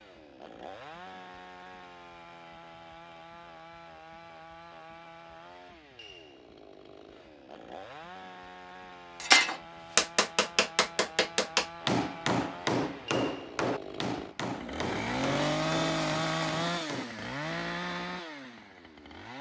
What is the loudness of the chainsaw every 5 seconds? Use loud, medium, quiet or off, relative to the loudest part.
quiet, quiet, medium, loud.